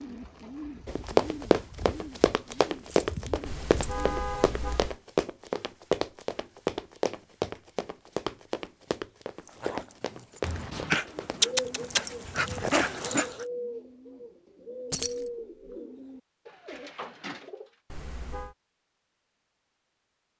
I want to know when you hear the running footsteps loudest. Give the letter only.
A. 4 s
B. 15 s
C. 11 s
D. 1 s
D.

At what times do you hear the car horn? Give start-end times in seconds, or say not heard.
3.5-5.0, 17.9-18.6.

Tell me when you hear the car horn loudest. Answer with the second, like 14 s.
4 s.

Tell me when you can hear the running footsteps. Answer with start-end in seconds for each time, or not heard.
0.8-11.4.